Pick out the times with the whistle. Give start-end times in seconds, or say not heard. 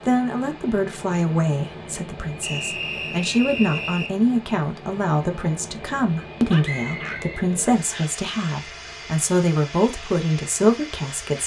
2.4-4.1, 6.6-8.1.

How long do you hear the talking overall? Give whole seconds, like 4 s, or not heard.
11 s.